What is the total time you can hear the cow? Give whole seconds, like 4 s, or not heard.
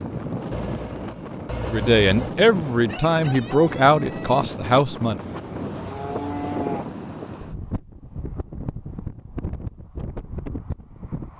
2 s.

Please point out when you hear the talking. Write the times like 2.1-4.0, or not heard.
1.6-5.2.